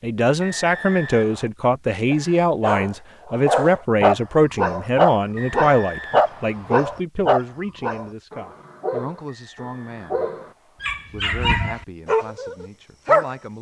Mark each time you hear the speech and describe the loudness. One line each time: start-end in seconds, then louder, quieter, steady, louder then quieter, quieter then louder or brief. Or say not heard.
0.0-10.3 quieter
11.1-13.5 brief.